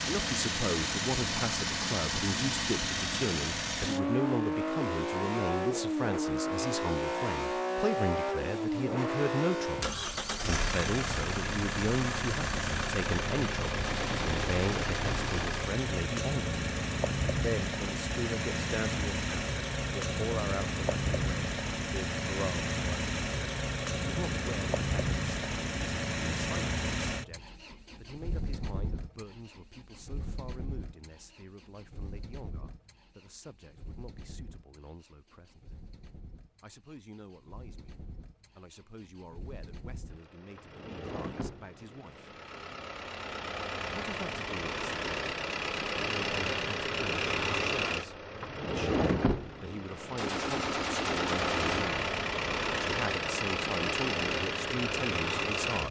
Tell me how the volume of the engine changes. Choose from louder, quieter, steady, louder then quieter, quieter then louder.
quieter then louder.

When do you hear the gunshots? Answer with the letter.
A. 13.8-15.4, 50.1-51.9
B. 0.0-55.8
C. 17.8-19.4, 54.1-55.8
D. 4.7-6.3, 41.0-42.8
A.